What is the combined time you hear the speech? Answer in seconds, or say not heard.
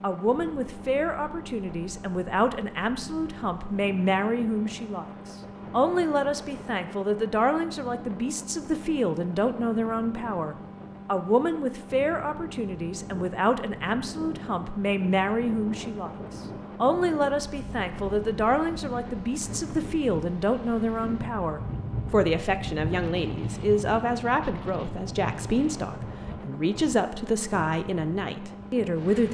28 s.